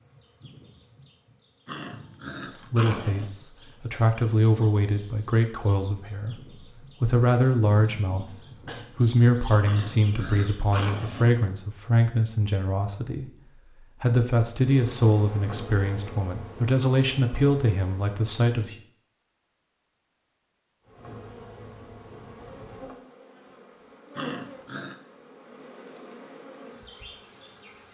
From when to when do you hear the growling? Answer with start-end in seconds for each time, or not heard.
1.6-3.3, 9.6-11.3, 24.1-25.0.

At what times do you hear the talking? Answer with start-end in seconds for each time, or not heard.
2.5-13.3, 14.0-18.8.